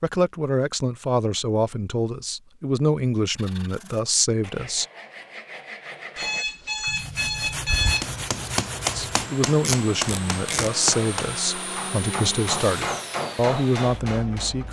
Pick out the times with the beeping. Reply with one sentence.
The beeping can be heard from 6.2 to 8.1 s.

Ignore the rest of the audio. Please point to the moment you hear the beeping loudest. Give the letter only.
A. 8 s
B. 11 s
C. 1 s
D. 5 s
A.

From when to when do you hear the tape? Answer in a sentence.
You can hear the tape from 9.6 to 10.7 s.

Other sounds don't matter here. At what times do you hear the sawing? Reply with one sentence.
You can hear the sawing from 3.4 to 9.3 s.